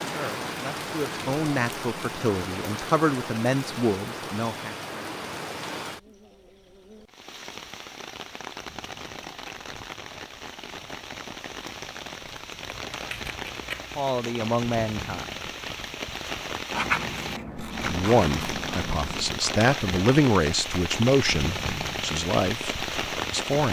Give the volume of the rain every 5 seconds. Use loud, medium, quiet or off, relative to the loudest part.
loud, medium, medium, loud, loud.